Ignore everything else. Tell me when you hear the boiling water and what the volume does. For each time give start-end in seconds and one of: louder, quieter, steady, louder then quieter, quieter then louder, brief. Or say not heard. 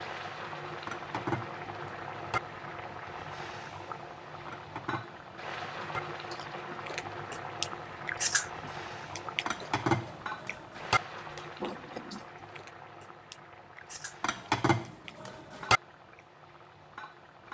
0.0-17.4 quieter.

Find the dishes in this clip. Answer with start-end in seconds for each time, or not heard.
0.8-2.4, 4.5-6.0, 9.4-11.0, 14.2-15.8.